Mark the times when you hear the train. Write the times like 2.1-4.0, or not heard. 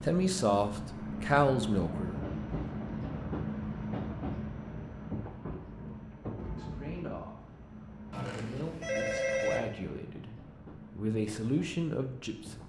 0.0-12.6.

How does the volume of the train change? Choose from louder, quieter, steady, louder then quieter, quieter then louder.
quieter.